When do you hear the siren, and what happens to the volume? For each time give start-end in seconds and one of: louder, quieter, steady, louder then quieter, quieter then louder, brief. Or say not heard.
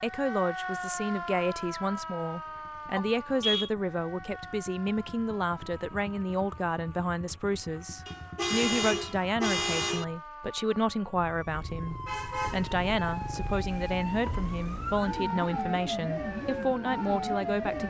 0.0-17.8 quieter then louder.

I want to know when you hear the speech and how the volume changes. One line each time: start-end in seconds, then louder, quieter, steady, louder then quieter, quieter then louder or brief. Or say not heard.
0.0-17.8 steady.